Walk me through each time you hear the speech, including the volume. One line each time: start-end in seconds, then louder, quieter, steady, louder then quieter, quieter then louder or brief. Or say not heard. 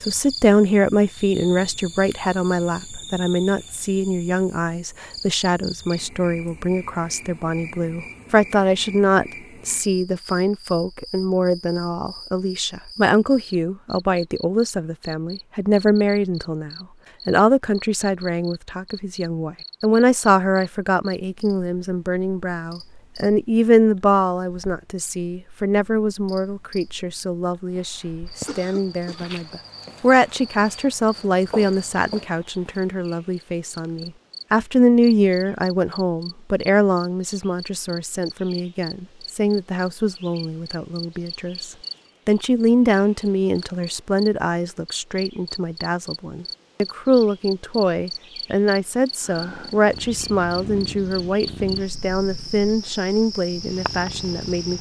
0.0-54.7 steady.